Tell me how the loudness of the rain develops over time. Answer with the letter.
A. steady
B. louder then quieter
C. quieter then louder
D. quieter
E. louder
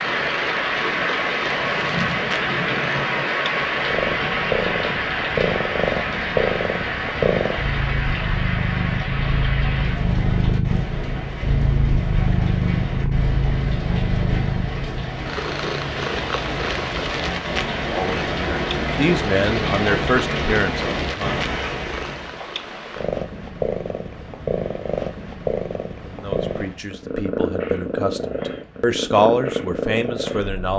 C.